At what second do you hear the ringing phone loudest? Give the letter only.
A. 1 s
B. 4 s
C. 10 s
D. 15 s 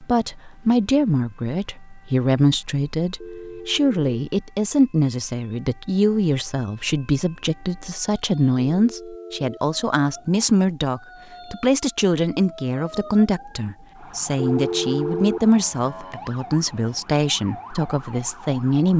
D.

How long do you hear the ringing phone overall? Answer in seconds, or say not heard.
3 s.